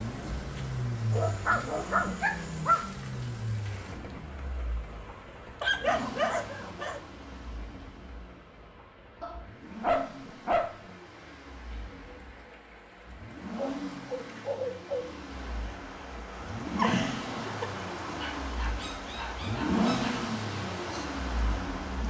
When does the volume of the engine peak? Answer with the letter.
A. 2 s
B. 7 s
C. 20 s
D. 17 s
C.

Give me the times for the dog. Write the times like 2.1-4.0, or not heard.
1.1-2.8, 5.6-7.0, 9.2-10.9, 13.6-15.2, 18.2-20.1.